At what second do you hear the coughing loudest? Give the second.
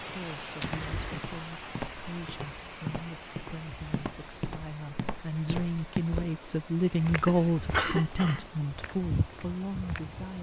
8 s.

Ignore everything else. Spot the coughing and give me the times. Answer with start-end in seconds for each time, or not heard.
0.6-1.2, 7.2-8.5.